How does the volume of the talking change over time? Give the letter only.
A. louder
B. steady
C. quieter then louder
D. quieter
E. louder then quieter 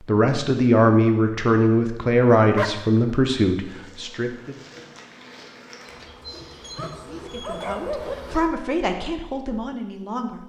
D.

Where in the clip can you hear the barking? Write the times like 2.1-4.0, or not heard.
2.4-3.4, 6.2-8.2.